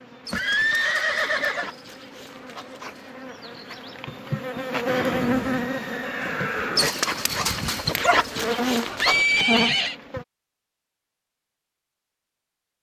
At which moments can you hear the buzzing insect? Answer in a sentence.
You can hear the buzzing insect from 0.0 to 10.2 s.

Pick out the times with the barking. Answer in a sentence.
You can hear the barking from 0.2 to 3.2 s and from 6.8 to 9.2 s.